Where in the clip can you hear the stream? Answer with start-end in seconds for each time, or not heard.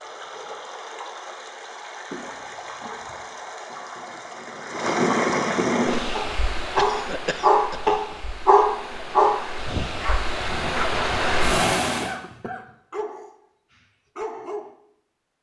0.0-12.1.